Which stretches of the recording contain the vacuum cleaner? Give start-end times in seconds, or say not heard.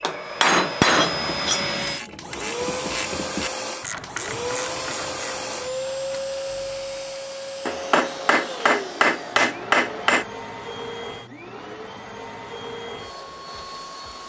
0.0-14.2.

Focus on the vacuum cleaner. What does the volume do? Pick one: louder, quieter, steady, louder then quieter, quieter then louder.
quieter.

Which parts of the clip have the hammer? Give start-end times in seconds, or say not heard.
0.0-1.8, 7.7-10.2.